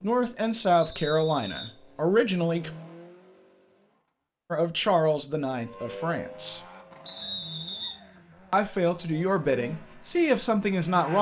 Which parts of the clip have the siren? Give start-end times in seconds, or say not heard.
5.5-7.6.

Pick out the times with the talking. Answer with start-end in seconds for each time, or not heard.
0.0-2.7, 4.5-6.6, 8.5-11.1.